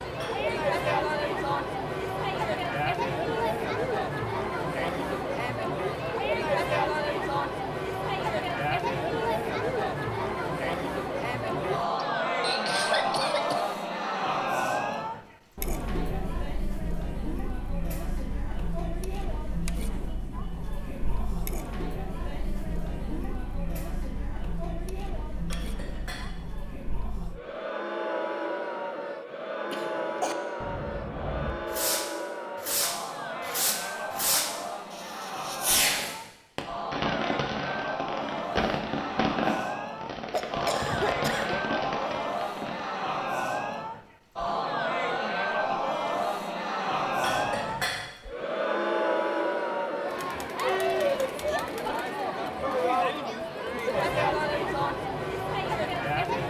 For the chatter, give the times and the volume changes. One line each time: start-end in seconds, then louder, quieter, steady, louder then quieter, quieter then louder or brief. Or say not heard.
0.0-56.4 quieter then louder.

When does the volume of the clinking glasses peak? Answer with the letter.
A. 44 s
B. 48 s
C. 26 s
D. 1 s
B.